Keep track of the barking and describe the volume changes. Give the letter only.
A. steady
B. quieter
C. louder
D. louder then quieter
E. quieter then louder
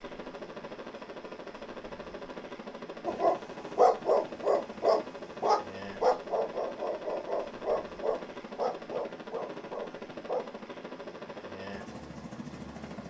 B.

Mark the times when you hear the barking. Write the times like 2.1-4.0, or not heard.
3.0-10.5.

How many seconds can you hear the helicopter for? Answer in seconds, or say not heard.
13 s.